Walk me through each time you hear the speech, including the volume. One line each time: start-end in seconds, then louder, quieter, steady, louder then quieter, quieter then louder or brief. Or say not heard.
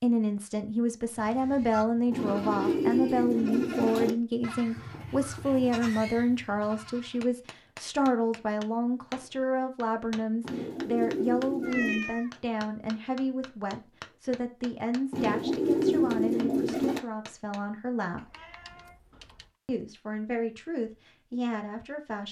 0.0-18.2 quieter
19.6-22.2 brief.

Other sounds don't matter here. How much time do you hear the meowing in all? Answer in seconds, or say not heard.
3 s.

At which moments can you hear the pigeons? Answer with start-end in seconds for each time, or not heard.
2.1-4.2, 10.4-12.1, 15.1-17.0.